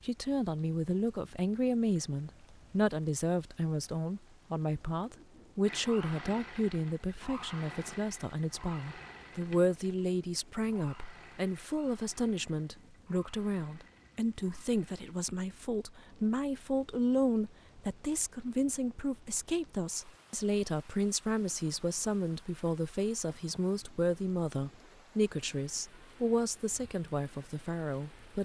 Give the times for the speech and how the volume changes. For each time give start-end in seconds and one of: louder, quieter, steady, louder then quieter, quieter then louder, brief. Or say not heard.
0.0-28.4 steady.